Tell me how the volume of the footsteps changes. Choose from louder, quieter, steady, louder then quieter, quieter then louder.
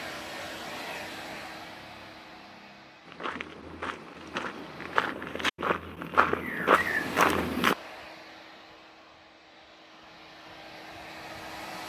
louder.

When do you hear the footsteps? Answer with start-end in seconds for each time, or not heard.
3.0-7.8.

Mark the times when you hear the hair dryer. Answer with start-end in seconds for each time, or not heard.
0.0-5.2, 6.8-11.8.